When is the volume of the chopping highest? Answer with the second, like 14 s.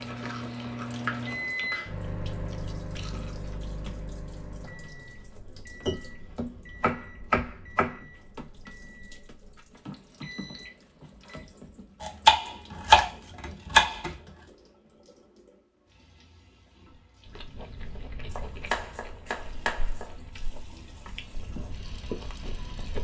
13 s.